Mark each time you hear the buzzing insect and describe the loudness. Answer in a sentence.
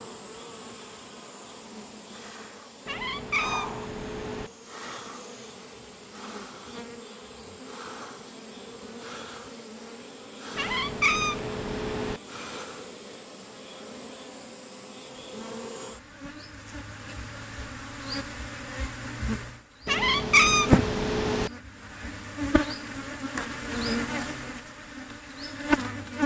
The buzzing insect can be heard from 0.0 to 26.2 s, getting louder.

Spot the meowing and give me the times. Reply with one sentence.
The meowing can be heard from 2.9 to 4.5 s, from 10.6 to 12.2 s and from 19.9 to 21.5 s.